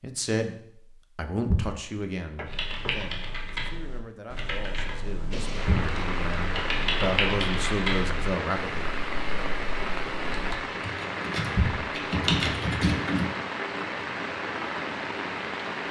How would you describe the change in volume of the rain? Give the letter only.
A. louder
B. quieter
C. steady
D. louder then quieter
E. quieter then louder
C.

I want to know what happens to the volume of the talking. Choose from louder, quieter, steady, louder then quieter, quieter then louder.
quieter then louder.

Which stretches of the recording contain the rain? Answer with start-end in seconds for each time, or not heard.
5.3-15.8.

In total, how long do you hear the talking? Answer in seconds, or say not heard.
9 s.